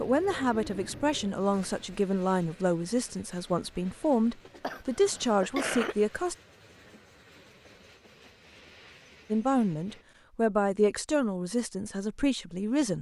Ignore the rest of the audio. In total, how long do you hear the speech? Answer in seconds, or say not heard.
10 s.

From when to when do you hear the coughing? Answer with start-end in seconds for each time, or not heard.
4.6-6.0.